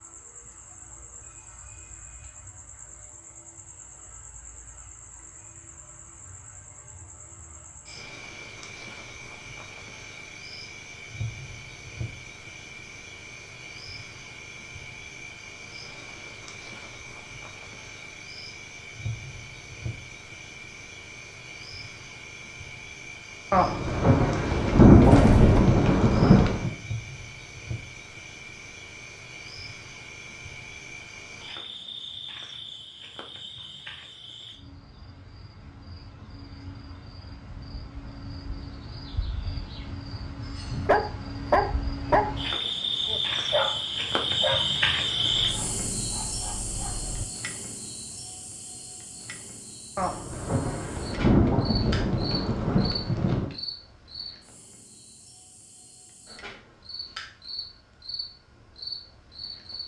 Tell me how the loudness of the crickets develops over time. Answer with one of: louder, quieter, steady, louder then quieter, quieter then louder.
louder then quieter.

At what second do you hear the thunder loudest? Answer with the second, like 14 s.
25 s.